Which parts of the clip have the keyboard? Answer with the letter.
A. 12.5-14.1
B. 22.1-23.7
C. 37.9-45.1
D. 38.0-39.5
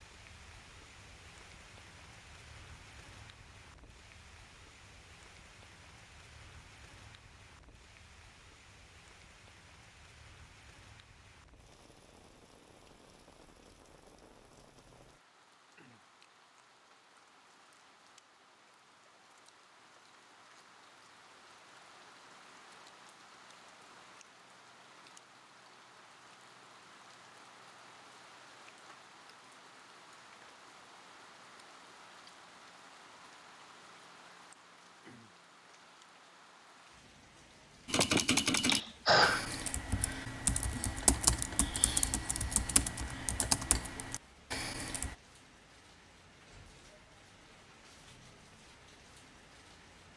C.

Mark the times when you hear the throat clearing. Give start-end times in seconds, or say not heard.
38.0-39.5.